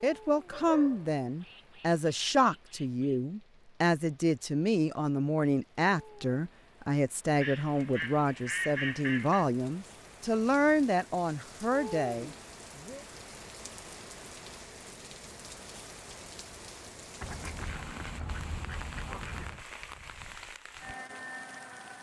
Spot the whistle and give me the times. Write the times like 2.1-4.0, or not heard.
not heard.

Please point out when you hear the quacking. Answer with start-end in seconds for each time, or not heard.
1.4-3.2, 7.4-9.4, 17.2-19.6.